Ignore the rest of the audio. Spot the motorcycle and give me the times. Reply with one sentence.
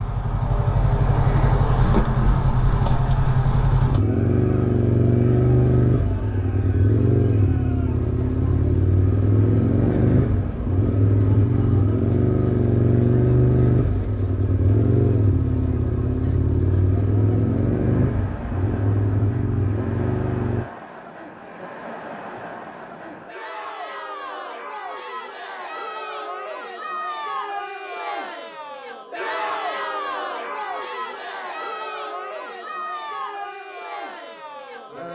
You can hear the motorcycle from 0.0 to 20.6 s.